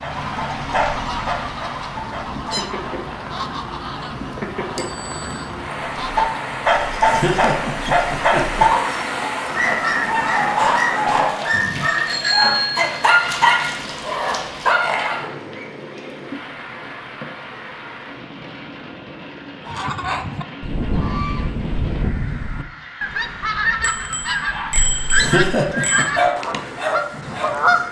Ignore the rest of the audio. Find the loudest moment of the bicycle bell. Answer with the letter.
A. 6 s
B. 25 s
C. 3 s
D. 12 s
D.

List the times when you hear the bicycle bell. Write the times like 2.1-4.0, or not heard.
4.8-5.4, 11.5-13.1, 23.8-26.1.